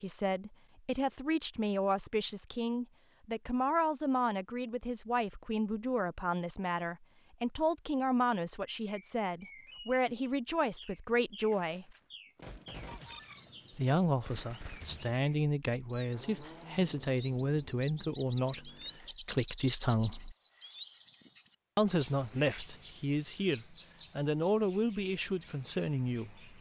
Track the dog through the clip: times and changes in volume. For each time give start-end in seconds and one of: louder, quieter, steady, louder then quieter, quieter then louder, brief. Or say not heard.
not heard.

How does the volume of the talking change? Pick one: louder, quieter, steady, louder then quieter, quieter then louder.
steady.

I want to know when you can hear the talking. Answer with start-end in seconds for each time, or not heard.
0.0-11.8, 13.8-20.4, 21.8-26.5.